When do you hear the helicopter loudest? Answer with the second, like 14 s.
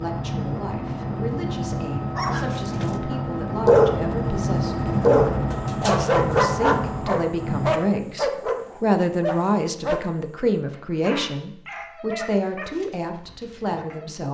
5 s.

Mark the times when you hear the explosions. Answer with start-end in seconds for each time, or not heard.
not heard.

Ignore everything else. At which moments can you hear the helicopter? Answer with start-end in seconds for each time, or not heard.
0.0-7.8.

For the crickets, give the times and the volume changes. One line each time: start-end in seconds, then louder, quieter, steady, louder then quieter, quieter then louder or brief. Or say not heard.
not heard.